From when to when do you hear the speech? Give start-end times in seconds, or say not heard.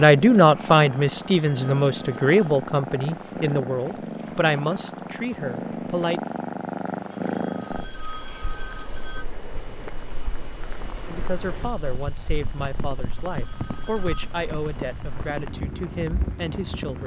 0.0-6.2, 11.1-17.0.